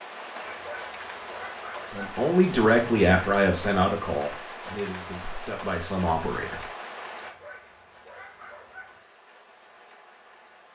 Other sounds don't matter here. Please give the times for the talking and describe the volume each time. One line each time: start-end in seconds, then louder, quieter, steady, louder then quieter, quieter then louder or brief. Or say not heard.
1.9-6.7 quieter then louder.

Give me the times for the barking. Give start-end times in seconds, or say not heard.
0.5-2.0, 7.2-9.0.